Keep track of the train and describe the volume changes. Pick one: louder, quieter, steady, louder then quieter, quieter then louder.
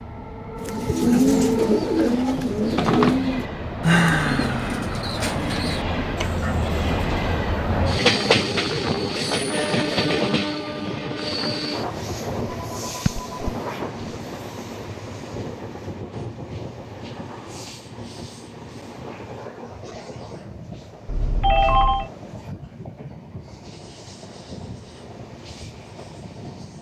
louder then quieter.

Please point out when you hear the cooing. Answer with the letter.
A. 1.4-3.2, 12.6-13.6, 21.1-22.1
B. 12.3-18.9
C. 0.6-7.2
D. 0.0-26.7
C.